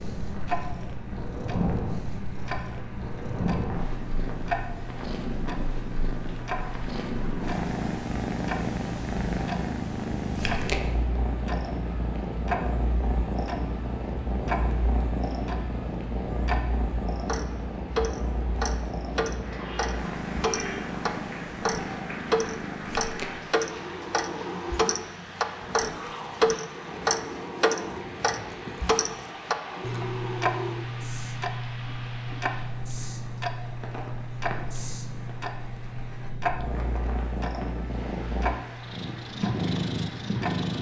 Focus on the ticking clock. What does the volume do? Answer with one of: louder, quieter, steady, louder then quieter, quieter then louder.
louder then quieter.